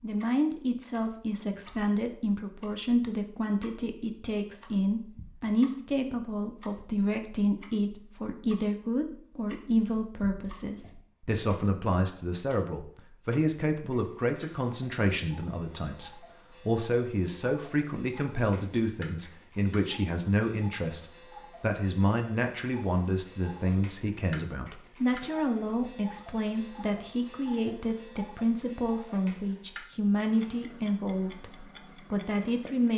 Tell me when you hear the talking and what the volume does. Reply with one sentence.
You can hear the talking from 0.0 to 32.9 s, at a steady volume.